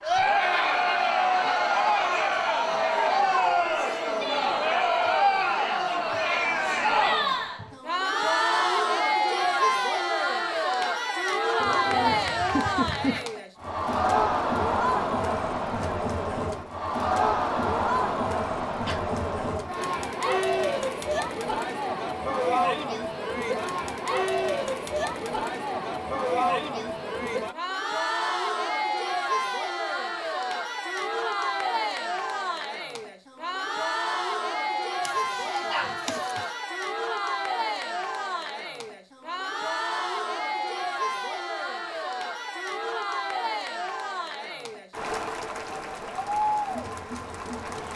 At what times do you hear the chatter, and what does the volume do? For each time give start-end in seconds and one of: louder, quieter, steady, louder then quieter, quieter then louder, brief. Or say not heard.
0.0-47.9 quieter.